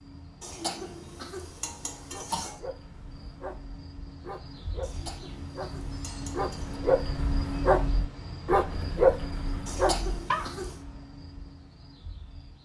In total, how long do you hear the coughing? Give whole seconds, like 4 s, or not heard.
5 s.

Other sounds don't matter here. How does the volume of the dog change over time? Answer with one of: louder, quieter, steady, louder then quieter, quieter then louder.
louder.